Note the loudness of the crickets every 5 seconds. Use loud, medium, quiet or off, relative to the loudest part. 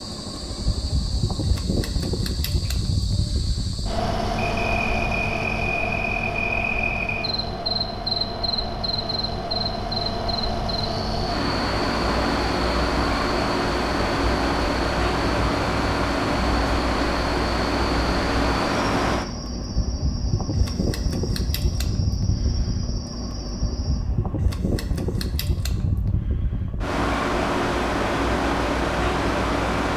medium, loud, medium, medium, medium, off.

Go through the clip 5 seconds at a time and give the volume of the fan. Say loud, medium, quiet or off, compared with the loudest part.
medium, medium, loud, loud, medium, loud.